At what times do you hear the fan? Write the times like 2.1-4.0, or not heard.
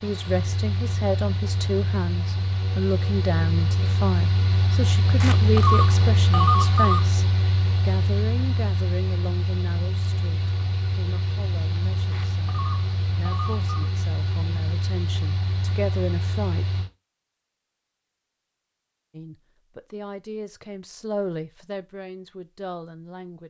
0.0-16.9.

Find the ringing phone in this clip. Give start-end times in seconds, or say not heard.
5.2-7.0, 12.1-13.9.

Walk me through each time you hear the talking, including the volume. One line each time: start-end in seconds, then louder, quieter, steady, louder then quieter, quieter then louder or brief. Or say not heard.
0.0-16.6 quieter then louder
19.1-23.4 louder then quieter.